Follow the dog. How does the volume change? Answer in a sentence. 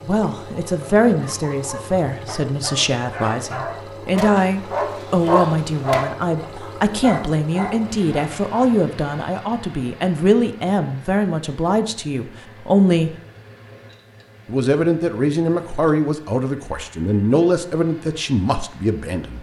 The volume of the dog goes up, then down.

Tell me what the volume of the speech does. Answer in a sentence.
The loudness of the speech stays about the same.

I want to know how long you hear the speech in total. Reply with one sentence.
You can hear the speech for 18 seconds altogether.